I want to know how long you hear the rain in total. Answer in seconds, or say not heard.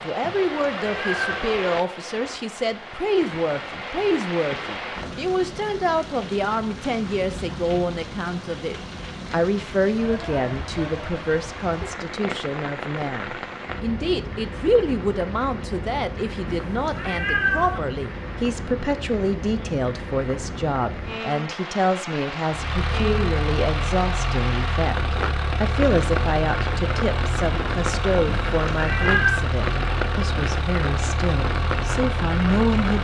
33 s.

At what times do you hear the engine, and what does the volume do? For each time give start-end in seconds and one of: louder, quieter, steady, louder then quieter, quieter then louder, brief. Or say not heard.
22.5-32.9 steady.